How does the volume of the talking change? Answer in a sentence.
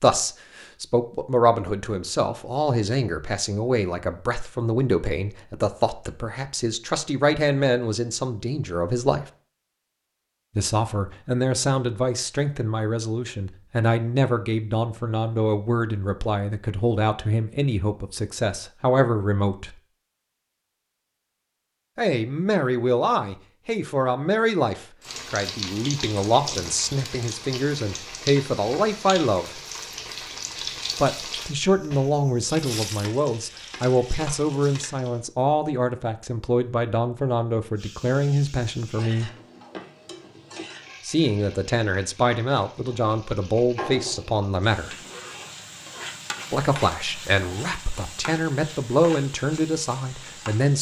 The volume of the talking stays about the same.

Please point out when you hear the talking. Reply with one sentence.
You can hear the talking from 0.0 to 9.2 s, from 10.6 to 19.8 s, from 21.9 to 29.6 s, from 30.9 to 39.3 s, from 41.0 to 45.0 s and from 46.5 to 50.7 s.